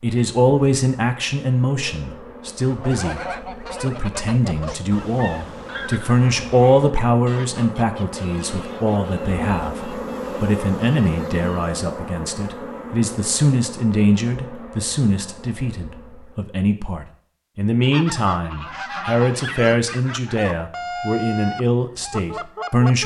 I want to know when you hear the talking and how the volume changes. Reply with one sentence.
The talking can be heard from 0.0 to 23.0 s, at a steady volume.